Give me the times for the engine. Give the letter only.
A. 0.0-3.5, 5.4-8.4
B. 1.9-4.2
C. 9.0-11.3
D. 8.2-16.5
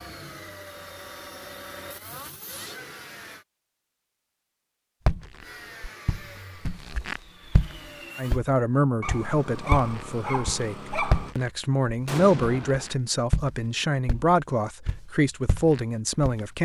A.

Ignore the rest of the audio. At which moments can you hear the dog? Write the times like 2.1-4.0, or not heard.
9.0-11.3.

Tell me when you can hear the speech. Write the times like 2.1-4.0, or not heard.
8.2-16.5.